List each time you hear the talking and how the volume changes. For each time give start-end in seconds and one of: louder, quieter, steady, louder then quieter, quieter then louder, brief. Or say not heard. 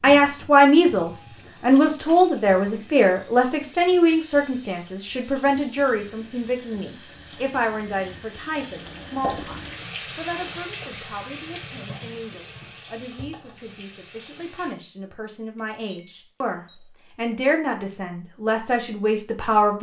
0.0-19.7 quieter then louder.